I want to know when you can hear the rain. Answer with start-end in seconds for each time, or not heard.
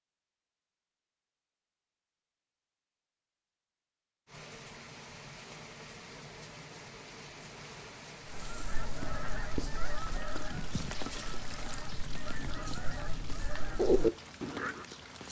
4.2-15.2.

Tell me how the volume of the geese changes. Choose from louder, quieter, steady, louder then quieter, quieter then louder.
quieter then louder.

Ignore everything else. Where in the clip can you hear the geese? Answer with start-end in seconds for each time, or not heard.
8.2-14.8.